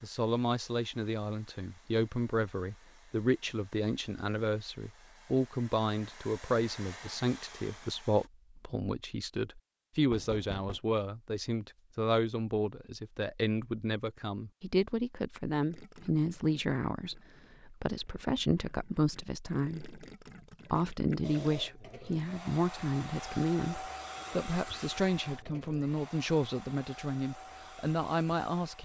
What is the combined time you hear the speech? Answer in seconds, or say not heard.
28 s.